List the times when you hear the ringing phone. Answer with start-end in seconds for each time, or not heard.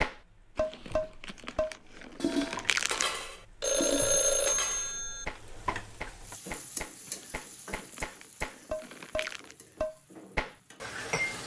3.6-5.2.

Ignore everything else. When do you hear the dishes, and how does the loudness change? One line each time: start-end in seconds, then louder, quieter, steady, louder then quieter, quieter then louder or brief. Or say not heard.
0.0-11.4 quieter then louder.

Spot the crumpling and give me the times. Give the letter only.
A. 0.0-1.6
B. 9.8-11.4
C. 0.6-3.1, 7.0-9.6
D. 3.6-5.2
C.